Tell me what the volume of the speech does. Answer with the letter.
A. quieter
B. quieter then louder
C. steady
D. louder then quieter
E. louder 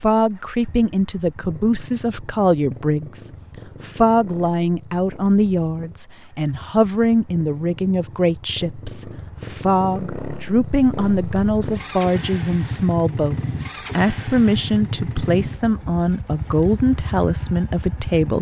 C.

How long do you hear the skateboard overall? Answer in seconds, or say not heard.
not heard.